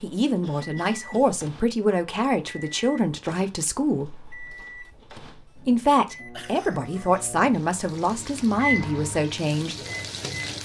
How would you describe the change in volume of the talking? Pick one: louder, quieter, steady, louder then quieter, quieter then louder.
steady.